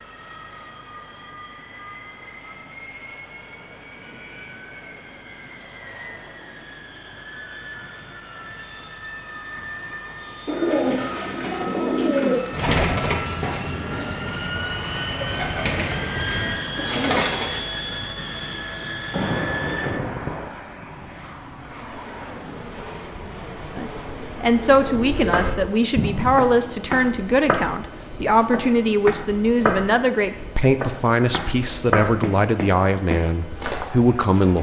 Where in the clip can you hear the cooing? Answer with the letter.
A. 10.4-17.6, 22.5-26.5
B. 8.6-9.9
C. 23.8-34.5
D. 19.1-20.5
A.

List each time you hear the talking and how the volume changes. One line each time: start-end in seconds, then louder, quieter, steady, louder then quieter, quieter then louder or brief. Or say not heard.
23.8-34.5 steady.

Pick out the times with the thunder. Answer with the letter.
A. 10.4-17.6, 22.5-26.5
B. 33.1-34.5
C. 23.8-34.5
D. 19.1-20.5
D.